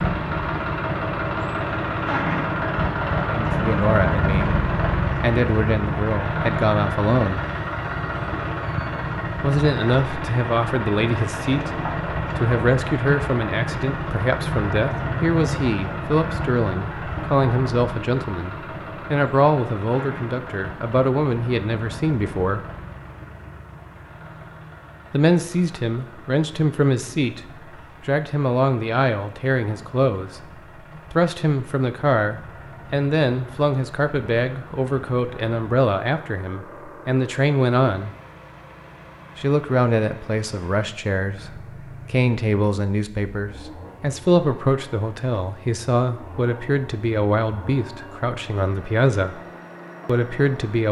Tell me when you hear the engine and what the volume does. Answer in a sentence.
You can hear the engine from 0.0 to 50.8 s, getting quieter.